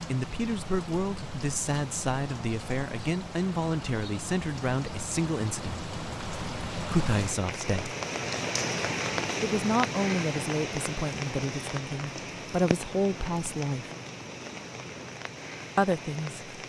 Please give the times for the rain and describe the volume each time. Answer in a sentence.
The rain can be heard from 0.0 to 16.6 s, getting louder then quieter.